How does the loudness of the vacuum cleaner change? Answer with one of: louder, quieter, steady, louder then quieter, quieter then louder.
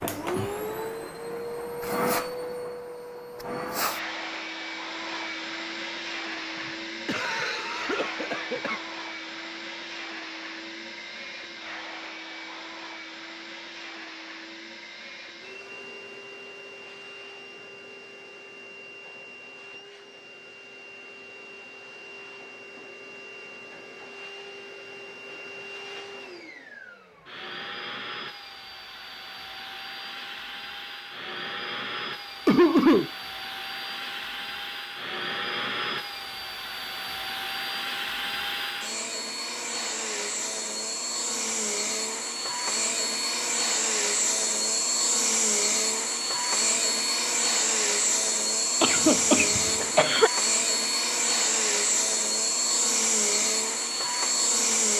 quieter then louder.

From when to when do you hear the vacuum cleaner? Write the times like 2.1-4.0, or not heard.
0.0-54.9.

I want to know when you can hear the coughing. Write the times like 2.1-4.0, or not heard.
6.5-8.8, 32.5-33.1, 48.8-50.3.